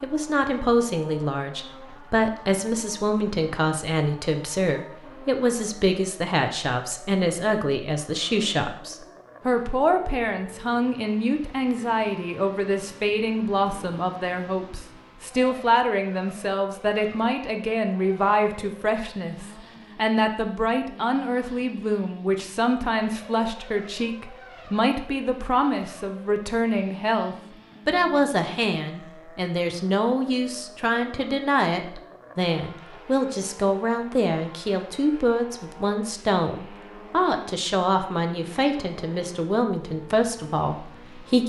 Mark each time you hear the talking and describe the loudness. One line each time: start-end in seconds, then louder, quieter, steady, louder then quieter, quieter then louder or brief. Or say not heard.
0.0-41.4 steady.